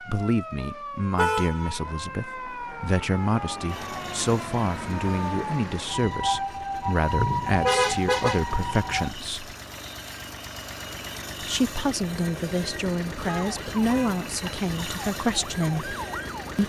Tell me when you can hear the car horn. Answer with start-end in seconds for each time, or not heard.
1.1-1.9, 7.0-8.7, 13.2-14.2.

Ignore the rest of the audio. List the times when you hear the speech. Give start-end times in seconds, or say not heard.
0.0-9.6, 11.4-15.9.